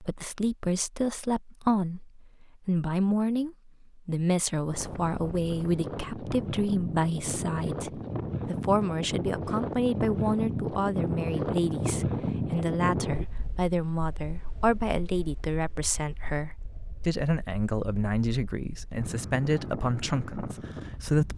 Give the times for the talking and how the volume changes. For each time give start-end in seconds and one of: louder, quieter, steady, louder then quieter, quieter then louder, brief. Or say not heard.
0.0-21.3 steady.